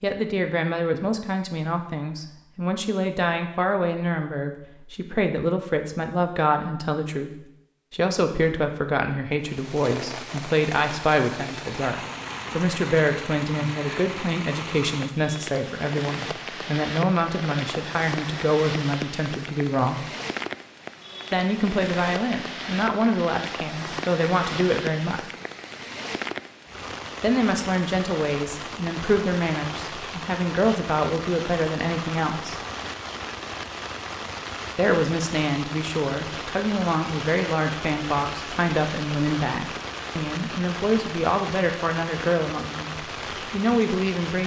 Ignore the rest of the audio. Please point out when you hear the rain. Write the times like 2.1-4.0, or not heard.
9.3-44.4.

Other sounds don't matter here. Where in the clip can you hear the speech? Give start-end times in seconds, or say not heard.
0.0-7.3, 7.9-20.1, 21.3-25.2, 27.2-32.5, 34.8-44.4.